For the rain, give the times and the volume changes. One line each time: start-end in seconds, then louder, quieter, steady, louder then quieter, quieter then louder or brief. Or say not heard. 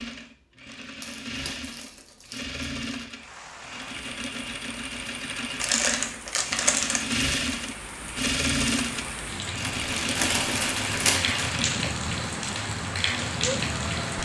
3.1-14.2 louder.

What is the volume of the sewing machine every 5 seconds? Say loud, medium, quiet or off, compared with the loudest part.
medium, loud, loud.